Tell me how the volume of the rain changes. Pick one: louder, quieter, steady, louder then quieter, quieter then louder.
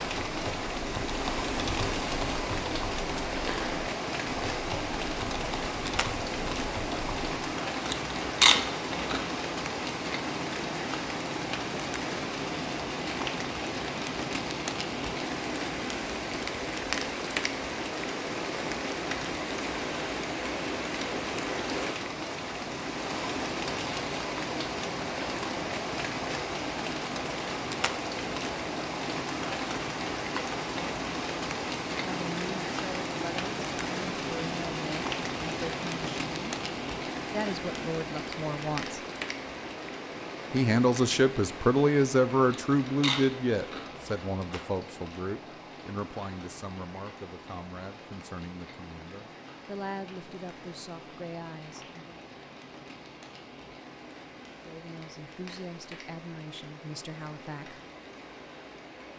quieter.